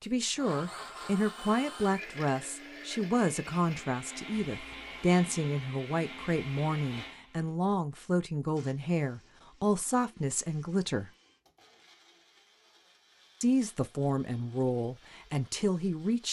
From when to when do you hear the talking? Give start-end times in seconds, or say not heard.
0.0-11.1, 13.4-16.2.